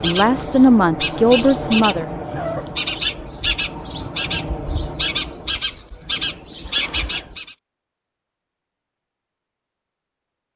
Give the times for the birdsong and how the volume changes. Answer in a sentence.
You can hear the birdsong from 0.0 to 7.5 s, at a steady volume.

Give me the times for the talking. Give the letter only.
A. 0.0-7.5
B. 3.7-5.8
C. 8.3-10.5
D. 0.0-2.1
D.